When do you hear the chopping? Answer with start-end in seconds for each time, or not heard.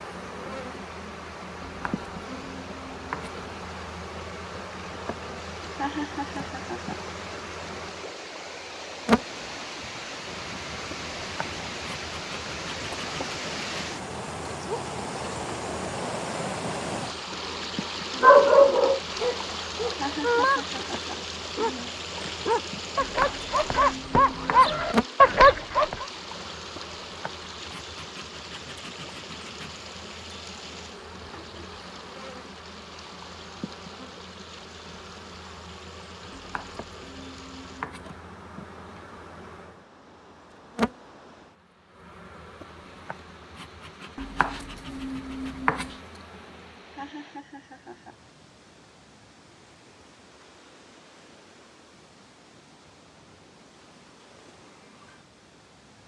1.6-3.4, 23.0-24.9, 36.3-38.1, 44.1-46.0.